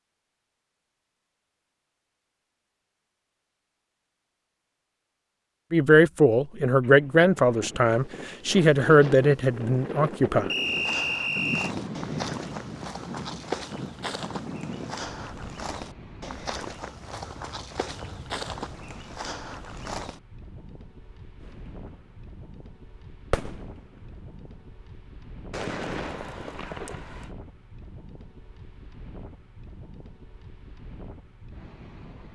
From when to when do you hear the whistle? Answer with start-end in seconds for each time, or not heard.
10.4-11.7.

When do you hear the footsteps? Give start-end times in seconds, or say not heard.
10.6-20.2.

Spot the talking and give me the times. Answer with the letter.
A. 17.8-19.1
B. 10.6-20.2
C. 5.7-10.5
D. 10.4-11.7
C.